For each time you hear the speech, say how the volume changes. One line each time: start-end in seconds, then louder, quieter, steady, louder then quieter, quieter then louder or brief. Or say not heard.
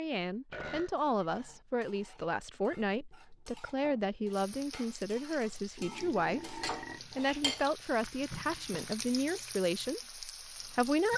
0.0-11.1 steady.